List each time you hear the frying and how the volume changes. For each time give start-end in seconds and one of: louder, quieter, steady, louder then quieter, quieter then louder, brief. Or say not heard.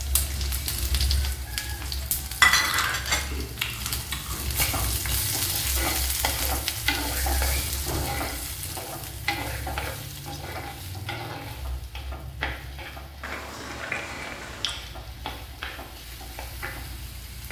0.0-17.4 quieter.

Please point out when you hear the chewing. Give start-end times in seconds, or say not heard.
2.5-5.2, 13.2-14.8.